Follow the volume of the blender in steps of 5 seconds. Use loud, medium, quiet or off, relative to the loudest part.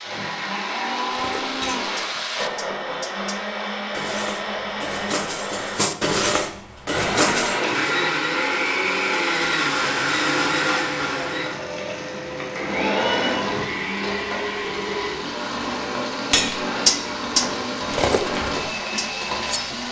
medium, loud, loud, medium.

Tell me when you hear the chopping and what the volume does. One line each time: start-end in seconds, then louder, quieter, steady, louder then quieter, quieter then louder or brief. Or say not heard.
not heard.